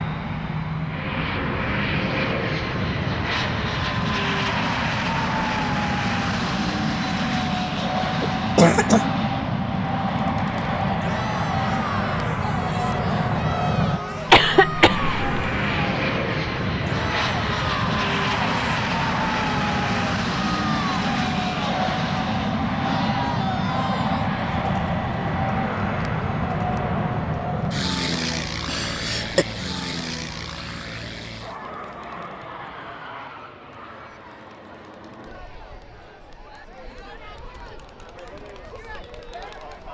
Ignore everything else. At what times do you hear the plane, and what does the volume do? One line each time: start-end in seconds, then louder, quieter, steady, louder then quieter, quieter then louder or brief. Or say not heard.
0.0-39.8 quieter.